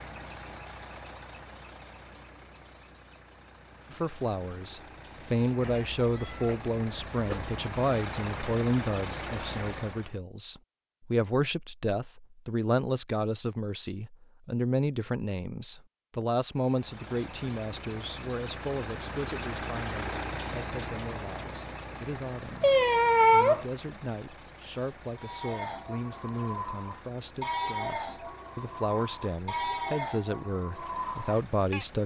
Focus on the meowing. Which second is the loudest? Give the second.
23 s.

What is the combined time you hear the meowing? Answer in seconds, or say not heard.
3 s.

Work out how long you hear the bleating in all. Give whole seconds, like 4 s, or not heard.
7 s.